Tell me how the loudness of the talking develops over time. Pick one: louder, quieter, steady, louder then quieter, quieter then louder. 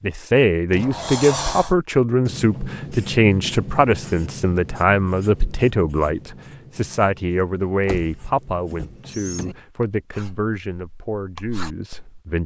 quieter.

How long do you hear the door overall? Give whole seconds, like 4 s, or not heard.
3 s.